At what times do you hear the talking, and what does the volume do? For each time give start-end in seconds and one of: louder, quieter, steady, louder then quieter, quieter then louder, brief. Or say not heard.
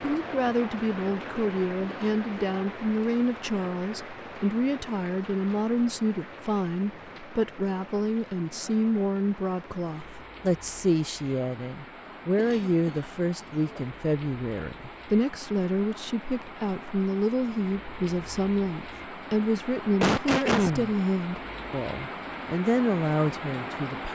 0.0-24.1 steady.